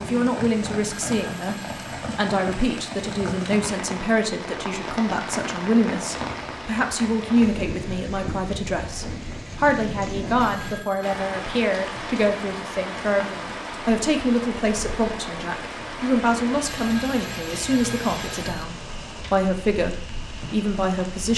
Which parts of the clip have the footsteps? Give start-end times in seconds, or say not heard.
not heard.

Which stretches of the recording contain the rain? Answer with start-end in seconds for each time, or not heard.
0.0-21.3.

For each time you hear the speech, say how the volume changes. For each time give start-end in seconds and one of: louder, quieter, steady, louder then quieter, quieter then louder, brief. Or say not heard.
0.0-1.6 brief
2.1-21.3 steady.